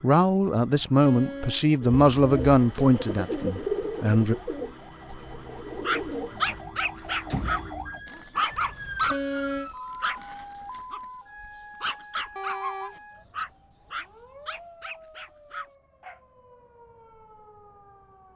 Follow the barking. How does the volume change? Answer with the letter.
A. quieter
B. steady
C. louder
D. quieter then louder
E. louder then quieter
A.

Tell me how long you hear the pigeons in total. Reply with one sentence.
The pigeons can be heard for 6 seconds in total.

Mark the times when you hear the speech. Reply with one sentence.
The speech can be heard from 0.0 to 4.3 s.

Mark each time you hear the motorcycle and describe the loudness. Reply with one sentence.
The motorcycle can't be heard in this clip.